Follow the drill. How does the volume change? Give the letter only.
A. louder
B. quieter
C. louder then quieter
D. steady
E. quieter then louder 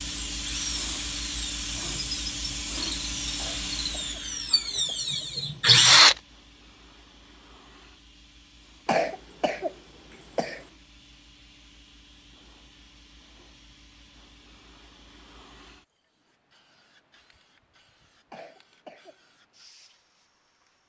A.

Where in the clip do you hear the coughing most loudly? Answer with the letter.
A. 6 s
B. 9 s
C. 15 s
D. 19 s
B.